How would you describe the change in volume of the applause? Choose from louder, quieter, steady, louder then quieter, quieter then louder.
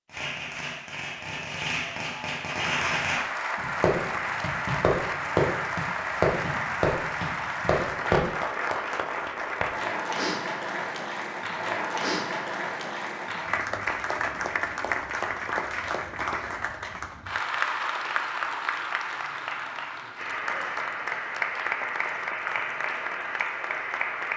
steady.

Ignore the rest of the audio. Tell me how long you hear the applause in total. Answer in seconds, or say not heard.
22 s.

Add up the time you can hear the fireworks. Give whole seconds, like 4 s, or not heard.
8 s.